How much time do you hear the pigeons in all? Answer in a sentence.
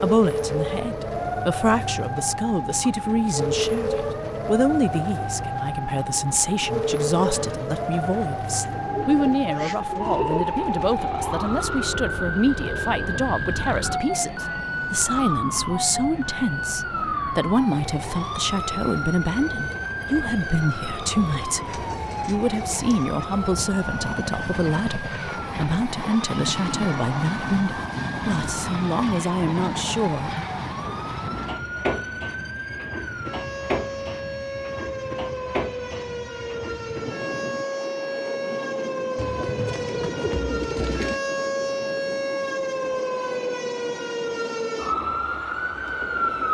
You can hear the pigeons for 6 seconds altogether.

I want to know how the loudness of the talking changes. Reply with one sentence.
The volume of the talking stays about the same.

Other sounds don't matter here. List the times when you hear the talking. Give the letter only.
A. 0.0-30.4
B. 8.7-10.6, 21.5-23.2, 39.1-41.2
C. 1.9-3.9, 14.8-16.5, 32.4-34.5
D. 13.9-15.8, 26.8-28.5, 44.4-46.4
A.